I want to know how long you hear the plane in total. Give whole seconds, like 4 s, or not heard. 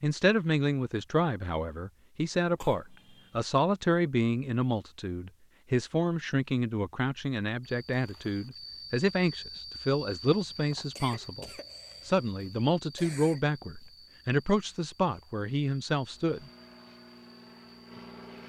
2 s.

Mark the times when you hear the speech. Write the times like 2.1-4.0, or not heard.
0.0-16.4.